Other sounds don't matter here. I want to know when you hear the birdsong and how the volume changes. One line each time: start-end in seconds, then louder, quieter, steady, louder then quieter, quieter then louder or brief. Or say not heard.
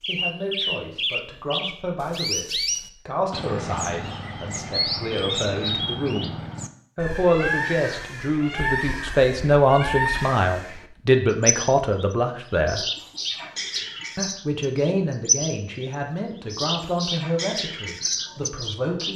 0.0-19.1 steady.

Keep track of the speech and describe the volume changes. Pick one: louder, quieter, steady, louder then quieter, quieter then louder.
louder then quieter.